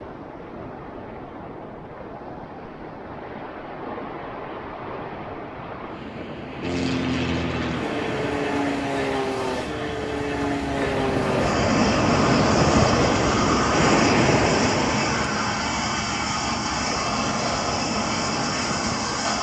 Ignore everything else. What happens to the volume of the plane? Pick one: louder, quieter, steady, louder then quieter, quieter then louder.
steady.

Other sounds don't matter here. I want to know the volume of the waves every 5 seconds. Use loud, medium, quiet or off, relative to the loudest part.
quiet, medium, loud, medium.